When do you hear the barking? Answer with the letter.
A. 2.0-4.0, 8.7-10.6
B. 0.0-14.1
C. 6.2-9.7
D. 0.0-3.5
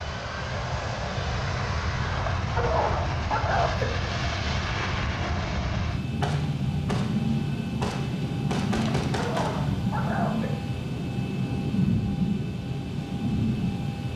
A.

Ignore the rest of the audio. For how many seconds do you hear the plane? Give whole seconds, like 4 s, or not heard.
14 s.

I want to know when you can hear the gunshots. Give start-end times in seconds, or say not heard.
6.2-9.7.